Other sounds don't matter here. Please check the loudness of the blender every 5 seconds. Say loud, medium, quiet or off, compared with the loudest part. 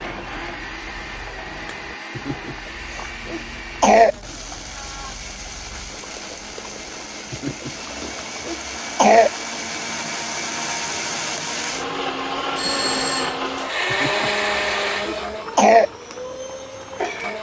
medium, medium, loud, medium.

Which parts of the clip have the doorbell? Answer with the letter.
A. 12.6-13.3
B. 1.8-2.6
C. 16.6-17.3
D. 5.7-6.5
A.